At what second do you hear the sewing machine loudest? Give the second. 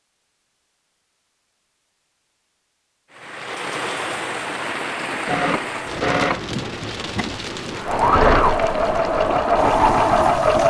10 s.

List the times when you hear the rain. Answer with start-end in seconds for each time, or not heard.
3.1-10.6.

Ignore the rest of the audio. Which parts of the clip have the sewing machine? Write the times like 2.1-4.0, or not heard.
5.2-10.6.